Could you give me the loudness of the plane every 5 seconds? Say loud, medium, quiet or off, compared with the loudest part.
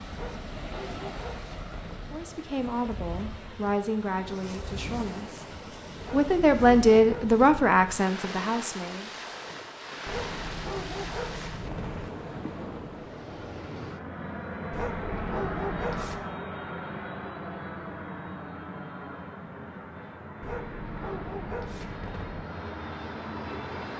off, off, loud, loud, loud.